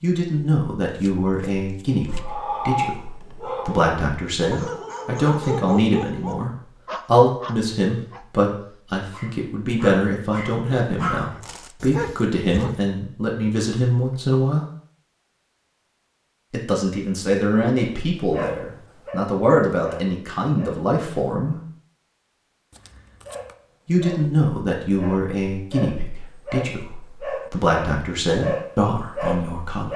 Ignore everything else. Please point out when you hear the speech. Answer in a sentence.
The speech can be heard from 0.0 to 14.7 s, from 16.5 to 21.6 s and from 23.9 to 29.9 s.